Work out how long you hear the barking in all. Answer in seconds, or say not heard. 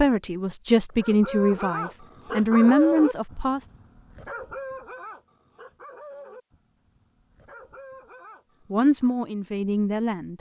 8 s.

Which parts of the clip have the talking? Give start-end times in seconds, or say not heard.
0.0-3.6, 8.7-10.3.